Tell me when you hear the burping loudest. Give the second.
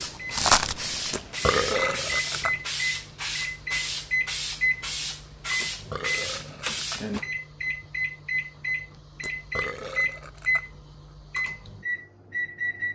2 s.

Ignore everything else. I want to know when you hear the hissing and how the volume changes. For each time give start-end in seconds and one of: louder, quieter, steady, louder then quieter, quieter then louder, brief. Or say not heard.
0.0-7.2 steady.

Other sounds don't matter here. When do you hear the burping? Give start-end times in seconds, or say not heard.
1.1-2.5, 5.6-7.0, 9.2-10.7.